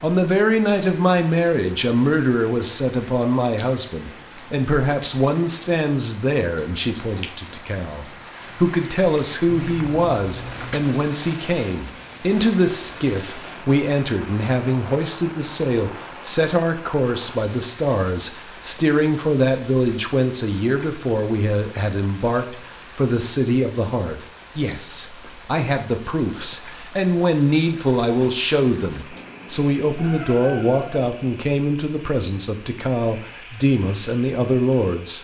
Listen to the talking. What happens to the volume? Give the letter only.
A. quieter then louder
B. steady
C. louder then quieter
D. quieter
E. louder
B.